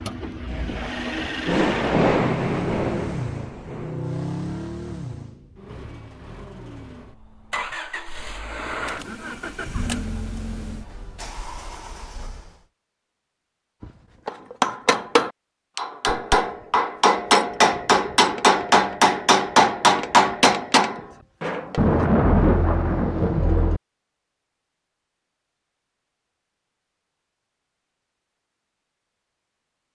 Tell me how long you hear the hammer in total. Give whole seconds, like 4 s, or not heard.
8 s.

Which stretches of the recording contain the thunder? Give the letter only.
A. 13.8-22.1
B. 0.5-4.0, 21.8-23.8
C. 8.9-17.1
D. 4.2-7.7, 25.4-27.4
B.